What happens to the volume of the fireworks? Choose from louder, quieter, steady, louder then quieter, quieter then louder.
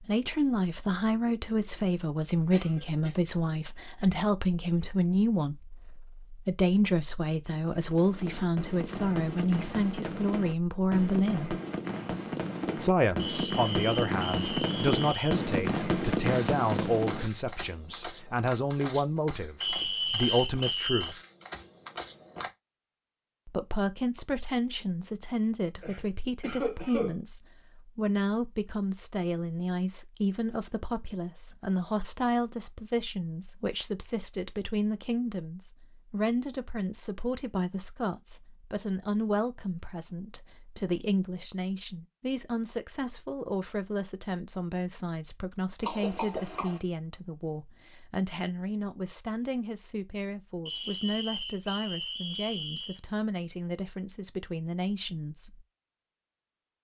louder.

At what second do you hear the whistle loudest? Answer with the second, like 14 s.
20 s.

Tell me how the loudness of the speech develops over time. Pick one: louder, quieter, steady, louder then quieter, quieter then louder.
quieter.